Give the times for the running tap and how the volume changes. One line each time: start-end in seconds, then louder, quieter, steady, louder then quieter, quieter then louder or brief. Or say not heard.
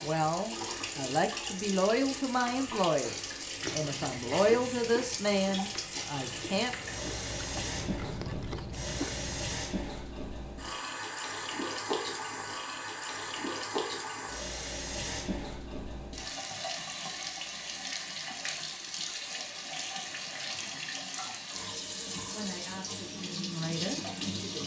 0.0-24.6 steady.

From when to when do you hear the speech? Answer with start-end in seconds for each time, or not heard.
0.0-6.8, 22.3-24.6.